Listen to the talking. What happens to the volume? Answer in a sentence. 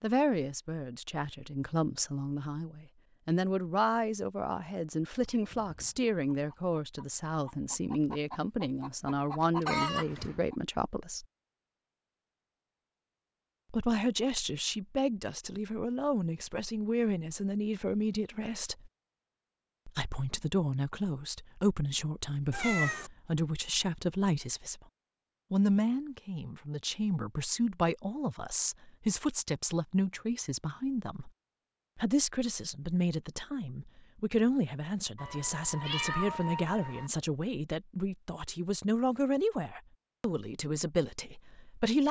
The loudness of the talking stays about the same.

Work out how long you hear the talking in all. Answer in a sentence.
You can hear the talking for 37 seconds altogether.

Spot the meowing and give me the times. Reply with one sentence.
You can hear the meowing from 9.8 to 10.4 s, from 22.5 to 23.1 s and from 35.1 to 37.1 s.